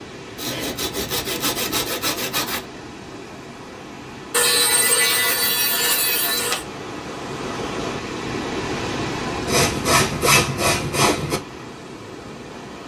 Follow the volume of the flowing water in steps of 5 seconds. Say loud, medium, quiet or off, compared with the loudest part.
medium, loud, medium.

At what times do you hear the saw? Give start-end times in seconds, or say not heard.
0.3-2.6, 4.3-6.7, 9.4-11.4.